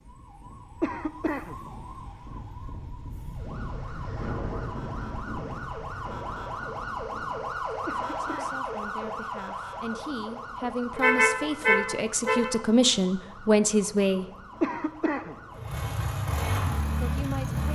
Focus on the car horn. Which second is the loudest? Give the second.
11 s.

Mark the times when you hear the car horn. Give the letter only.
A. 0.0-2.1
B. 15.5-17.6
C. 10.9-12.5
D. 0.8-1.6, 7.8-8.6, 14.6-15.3
C.